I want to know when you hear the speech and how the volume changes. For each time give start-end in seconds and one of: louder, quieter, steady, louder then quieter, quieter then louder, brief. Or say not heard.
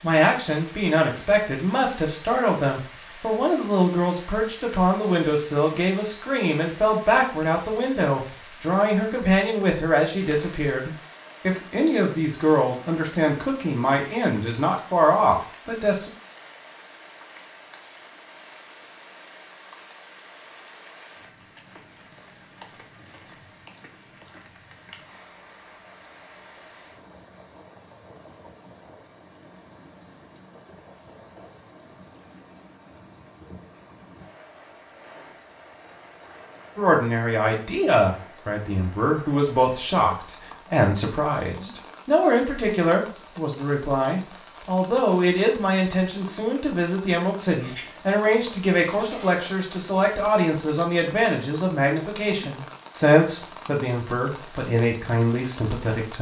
0.0-16.1 steady
36.8-56.1 steady.